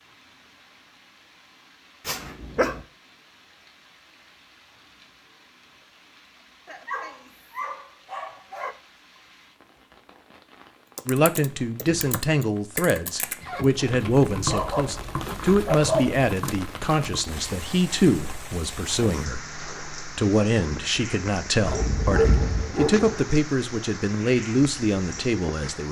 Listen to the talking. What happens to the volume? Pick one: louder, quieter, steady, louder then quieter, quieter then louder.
steady.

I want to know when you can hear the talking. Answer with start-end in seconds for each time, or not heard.
11.1-25.8.